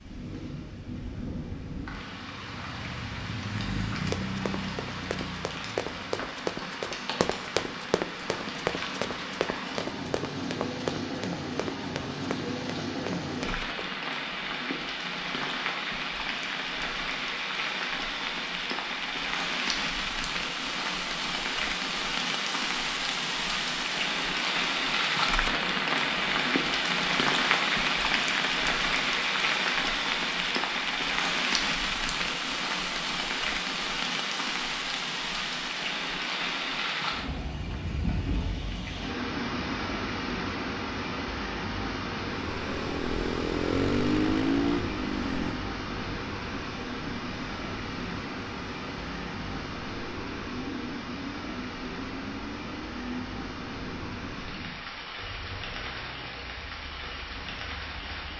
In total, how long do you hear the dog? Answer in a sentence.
The dog can't be heard in this clip.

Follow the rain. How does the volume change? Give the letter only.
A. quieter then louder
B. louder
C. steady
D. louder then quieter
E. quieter
D.